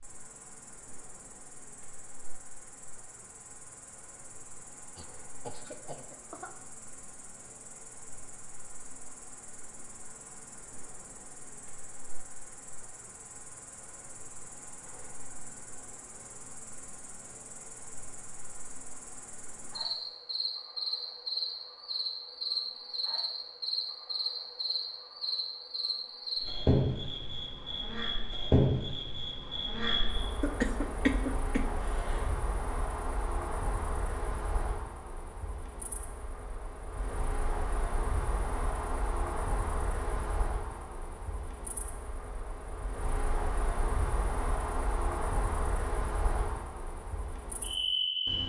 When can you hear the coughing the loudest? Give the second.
31 s.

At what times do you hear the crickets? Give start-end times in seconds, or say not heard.
0.0-48.4.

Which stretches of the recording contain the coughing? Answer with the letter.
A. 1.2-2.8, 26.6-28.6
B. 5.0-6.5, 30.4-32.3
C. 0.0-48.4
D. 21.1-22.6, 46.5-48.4
B.